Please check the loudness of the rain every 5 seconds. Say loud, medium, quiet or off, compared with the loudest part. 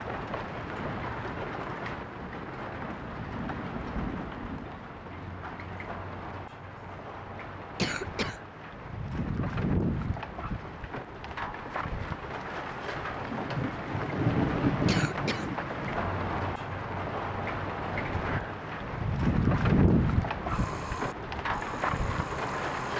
medium, medium, loud, loud, loud.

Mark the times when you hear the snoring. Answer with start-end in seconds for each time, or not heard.
20.4-22.9.